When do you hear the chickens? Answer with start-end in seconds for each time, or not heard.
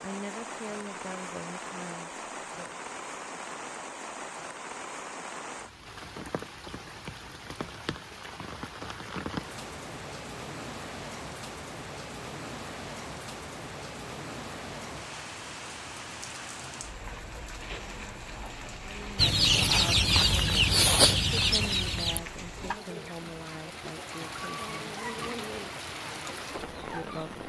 19.1-27.3.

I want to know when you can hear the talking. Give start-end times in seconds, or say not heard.
0.0-2.9, 18.8-25.4, 26.9-27.4.